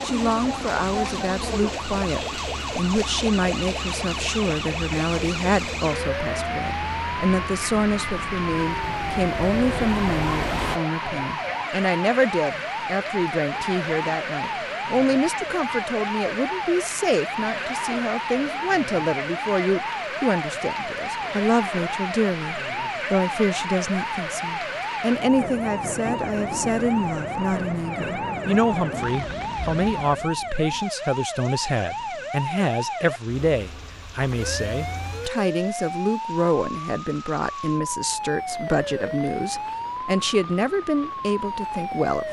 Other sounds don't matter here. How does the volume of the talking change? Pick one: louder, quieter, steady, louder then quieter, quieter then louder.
steady.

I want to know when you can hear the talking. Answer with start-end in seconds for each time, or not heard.
0.0-42.2.